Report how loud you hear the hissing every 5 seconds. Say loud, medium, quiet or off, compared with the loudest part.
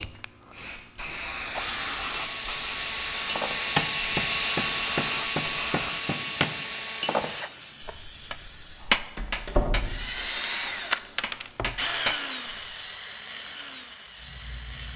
loud, loud, quiet.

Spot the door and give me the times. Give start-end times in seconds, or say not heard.
8.9-10.3.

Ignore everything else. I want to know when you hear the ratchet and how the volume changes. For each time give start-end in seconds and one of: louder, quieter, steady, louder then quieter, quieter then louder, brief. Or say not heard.
not heard.